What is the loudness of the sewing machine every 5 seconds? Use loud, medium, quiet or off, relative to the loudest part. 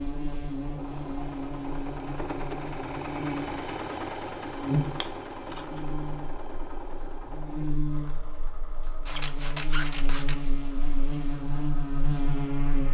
loud, medium, quiet.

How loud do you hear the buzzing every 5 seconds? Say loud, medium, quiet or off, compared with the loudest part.
loud, medium, loud.